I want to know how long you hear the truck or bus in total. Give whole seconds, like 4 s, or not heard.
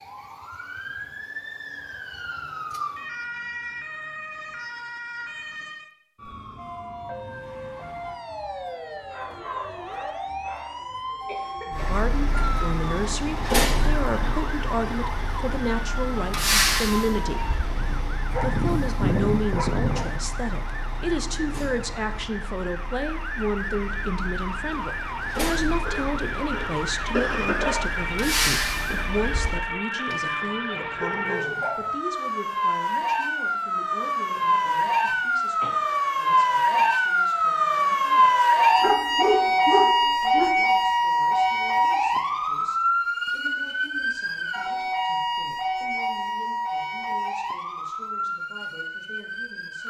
18 s.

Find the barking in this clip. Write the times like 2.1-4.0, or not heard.
9.1-10.8, 17.8-20.1, 30.1-31.9, 38.8-40.5.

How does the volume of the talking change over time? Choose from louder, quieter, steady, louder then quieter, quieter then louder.
quieter.